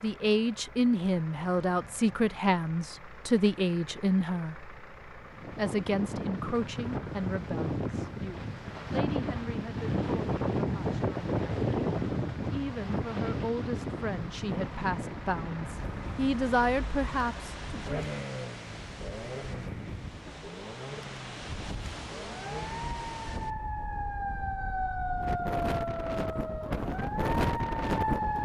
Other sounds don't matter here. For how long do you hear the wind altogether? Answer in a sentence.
The wind can be heard for 23 seconds in total.